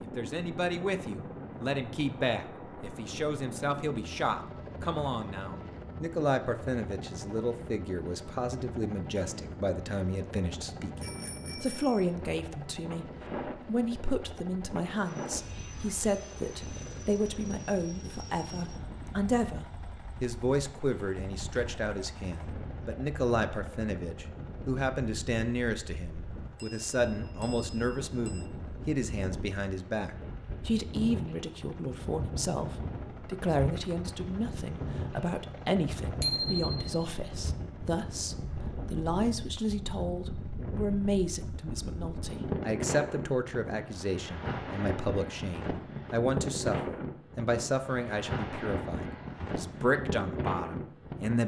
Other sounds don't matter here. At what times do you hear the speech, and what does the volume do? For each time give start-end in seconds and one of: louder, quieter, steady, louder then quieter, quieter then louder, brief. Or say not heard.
0.0-51.4 steady.